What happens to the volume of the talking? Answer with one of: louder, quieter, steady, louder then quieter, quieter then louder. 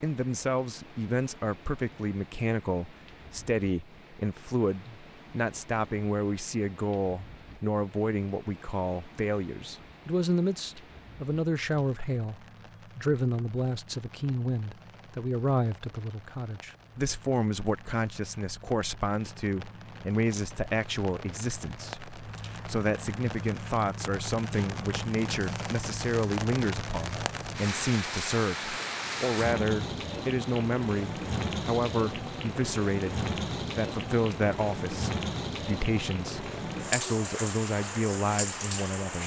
steady.